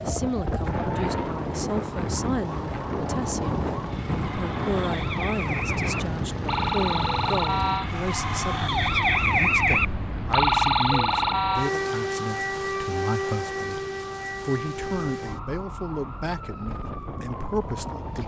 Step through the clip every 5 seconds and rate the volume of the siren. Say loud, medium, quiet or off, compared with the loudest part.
quiet, loud, loud, quiet.